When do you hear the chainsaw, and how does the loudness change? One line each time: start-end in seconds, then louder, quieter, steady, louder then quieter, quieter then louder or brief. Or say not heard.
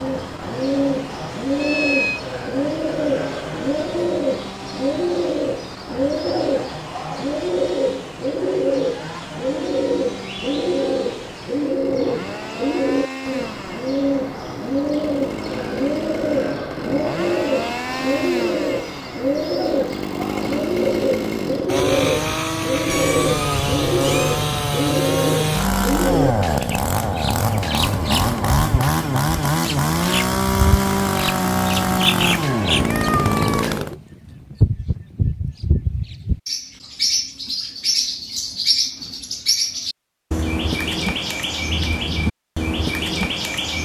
0.0-34.0 louder.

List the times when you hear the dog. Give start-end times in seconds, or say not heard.
not heard.